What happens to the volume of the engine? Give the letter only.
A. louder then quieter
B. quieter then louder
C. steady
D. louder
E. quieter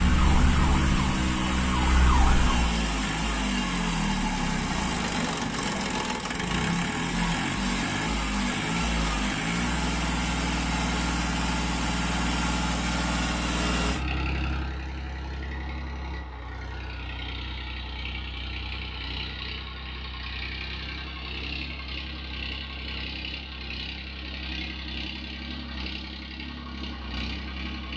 E.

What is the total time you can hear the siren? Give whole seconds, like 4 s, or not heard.
3 s.